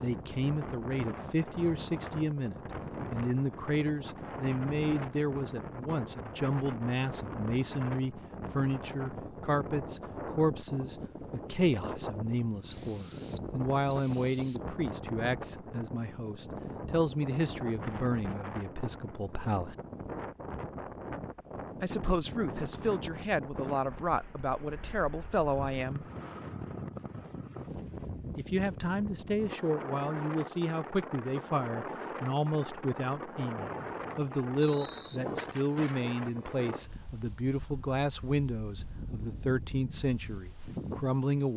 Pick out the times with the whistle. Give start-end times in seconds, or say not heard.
12.7-14.6, 33.5-35.2.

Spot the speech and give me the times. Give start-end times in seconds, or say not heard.
0.0-19.8, 21.8-26.1, 28.4-41.5.